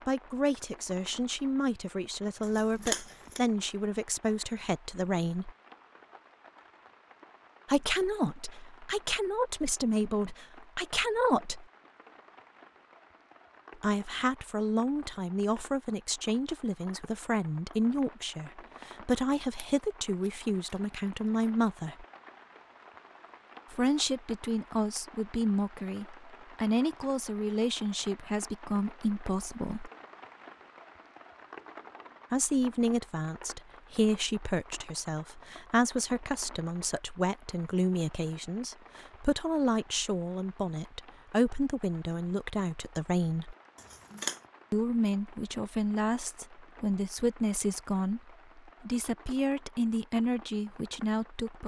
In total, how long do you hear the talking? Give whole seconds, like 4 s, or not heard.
42 s.